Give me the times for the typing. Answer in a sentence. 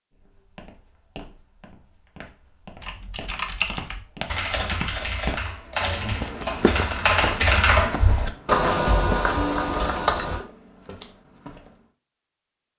You can hear the typing from 2.8 to 10.4 s.